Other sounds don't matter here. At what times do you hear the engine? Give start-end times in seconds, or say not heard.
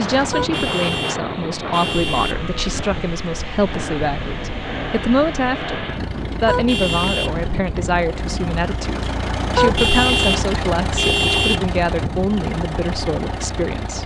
0.1-14.0.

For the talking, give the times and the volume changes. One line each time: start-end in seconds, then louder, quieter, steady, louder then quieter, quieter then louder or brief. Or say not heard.
0.0-14.0 steady.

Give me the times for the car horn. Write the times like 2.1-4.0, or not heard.
0.3-2.4, 6.5-7.5, 9.6-11.6.